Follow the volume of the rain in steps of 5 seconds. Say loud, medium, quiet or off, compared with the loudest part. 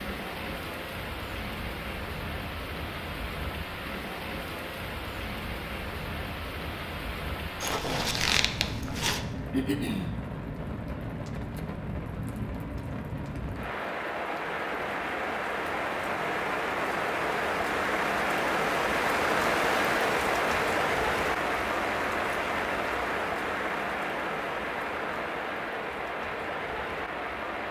medium, medium, medium, loud, loud, medium.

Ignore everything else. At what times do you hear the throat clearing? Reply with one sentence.
The throat clearing can be heard from 9.5 to 10.2 s.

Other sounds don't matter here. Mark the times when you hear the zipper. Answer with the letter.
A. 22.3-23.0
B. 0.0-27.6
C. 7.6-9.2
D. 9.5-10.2
C.